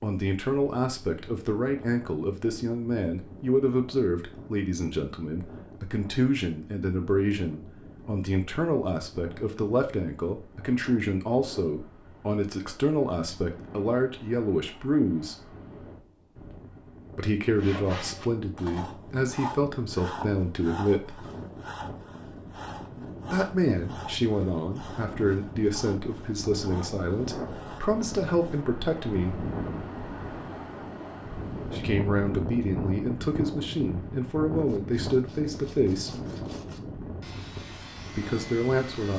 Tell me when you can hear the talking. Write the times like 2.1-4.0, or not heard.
0.0-15.3, 17.1-21.2, 23.2-29.4, 31.7-36.1, 38.1-39.1.